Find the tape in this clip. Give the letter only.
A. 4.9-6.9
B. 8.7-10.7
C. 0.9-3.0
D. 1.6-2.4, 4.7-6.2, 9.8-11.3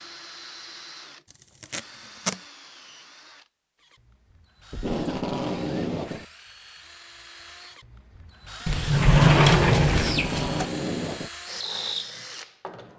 D.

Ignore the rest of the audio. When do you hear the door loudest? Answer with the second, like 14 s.
9 s.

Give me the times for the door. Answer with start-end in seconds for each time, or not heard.
8.7-10.7.